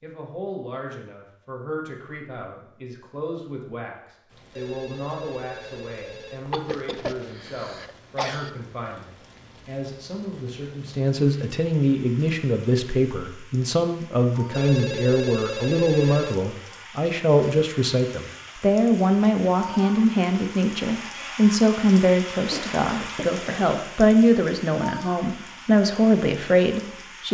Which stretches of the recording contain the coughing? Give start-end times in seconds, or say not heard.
6.5-8.5, 22.4-23.7.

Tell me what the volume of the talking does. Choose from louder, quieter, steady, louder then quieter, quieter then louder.
louder.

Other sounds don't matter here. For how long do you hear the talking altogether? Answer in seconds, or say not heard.
27 s.